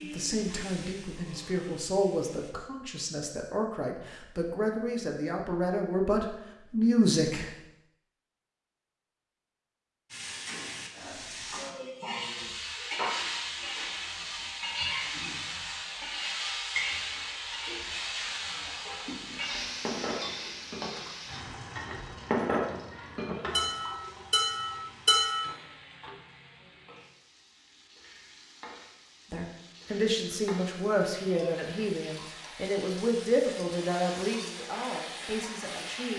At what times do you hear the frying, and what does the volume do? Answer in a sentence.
The frying can be heard briefly from 0.0 to 2.5 s; and from 10.1 to 36.1 s, getting quieter then louder.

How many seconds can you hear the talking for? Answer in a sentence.
You can hear the talking for 14 seconds altogether.